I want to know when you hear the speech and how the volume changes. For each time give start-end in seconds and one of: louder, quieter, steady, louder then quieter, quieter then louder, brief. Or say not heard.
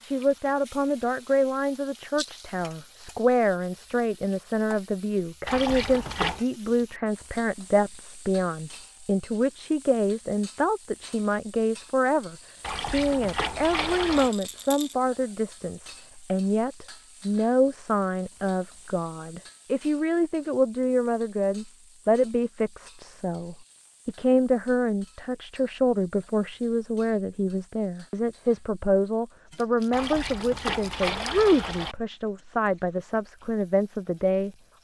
0.0-34.5 steady.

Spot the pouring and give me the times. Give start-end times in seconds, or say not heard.
5.5-6.5, 12.6-14.3, 29.9-31.9.